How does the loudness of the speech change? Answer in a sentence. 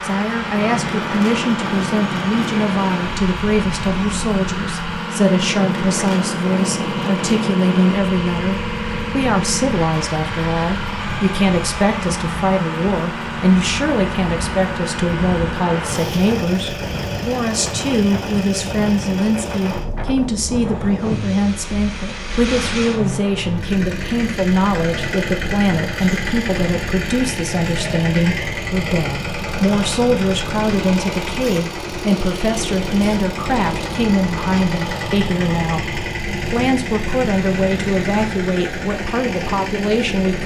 The loudness of the speech stays about the same.